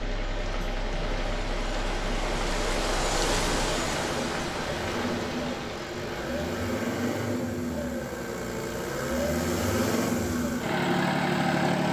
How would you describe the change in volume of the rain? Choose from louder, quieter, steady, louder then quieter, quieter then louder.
louder then quieter.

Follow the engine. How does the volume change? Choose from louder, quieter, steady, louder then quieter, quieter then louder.
louder.